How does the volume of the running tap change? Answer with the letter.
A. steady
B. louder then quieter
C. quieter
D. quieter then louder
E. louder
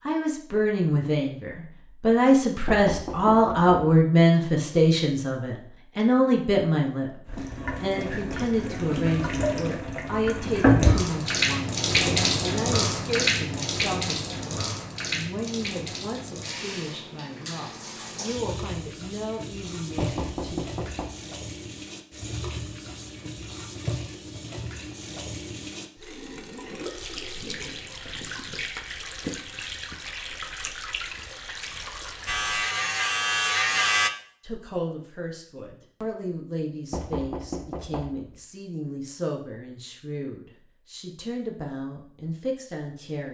C.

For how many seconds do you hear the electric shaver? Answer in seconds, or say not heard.
2 s.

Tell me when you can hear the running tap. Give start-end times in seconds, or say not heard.
7.2-32.6.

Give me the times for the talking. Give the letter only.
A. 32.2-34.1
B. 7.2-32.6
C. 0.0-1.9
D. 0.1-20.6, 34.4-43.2
D.